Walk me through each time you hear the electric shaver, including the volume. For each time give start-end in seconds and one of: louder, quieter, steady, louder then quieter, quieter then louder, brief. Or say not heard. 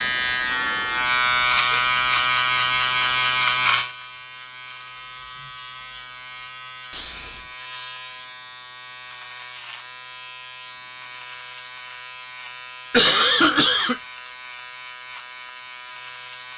0.0-16.5 quieter.